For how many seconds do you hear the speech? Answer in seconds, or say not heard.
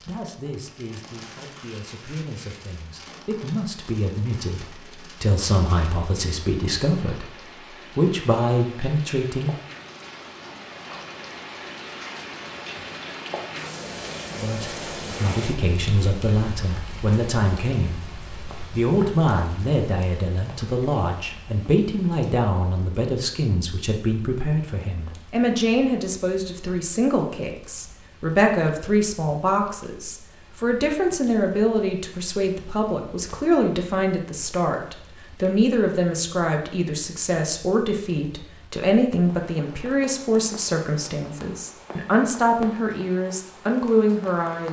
39 s.